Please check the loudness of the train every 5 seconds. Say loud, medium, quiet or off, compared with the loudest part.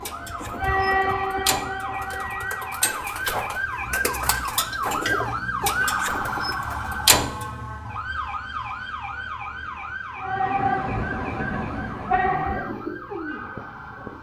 loud, off, loud.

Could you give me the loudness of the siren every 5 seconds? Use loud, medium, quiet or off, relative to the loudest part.
loud, loud, medium.